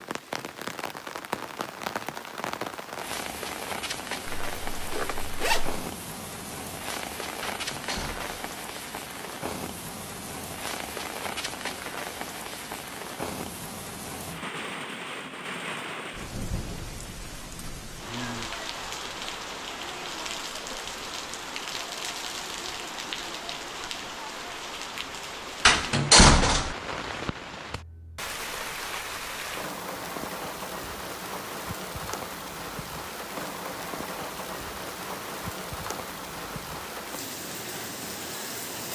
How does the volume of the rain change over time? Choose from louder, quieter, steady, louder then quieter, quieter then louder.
steady.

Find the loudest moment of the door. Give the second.
26 s.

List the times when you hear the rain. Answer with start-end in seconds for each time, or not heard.
0.0-38.9.